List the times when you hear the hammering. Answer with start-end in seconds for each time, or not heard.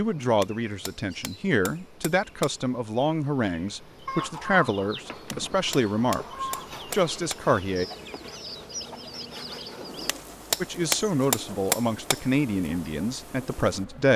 0.1-2.5, 5.0-7.5, 9.8-12.2.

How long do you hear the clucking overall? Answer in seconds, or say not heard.
6 s.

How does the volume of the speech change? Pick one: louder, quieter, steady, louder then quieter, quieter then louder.
steady.